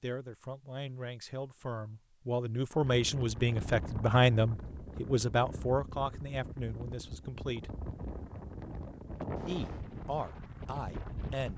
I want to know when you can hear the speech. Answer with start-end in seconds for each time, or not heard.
0.0-7.7, 9.3-11.5.